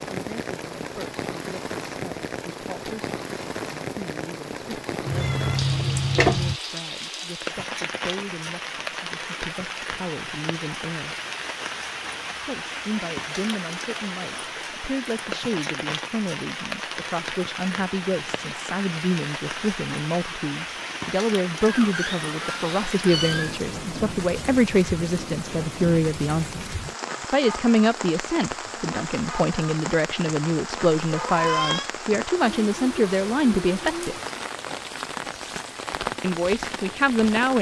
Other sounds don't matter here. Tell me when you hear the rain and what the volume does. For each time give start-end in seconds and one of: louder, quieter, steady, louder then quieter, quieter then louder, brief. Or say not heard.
0.0-37.5 steady.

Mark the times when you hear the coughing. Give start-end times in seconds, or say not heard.
not heard.